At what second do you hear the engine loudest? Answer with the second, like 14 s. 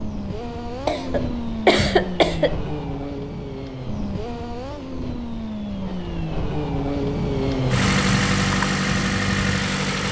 8 s.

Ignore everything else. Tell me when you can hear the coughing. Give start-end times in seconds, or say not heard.
0.8-2.5.